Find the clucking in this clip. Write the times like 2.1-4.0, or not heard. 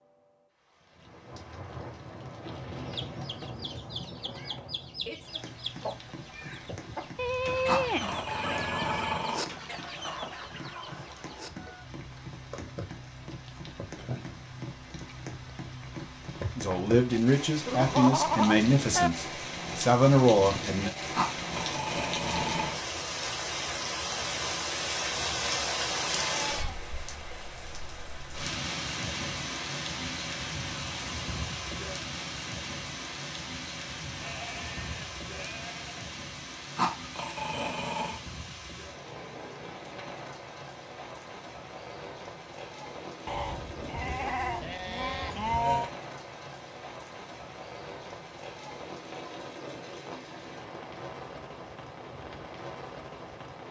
2.9-11.8.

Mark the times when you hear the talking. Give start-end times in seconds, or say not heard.
16.6-20.9.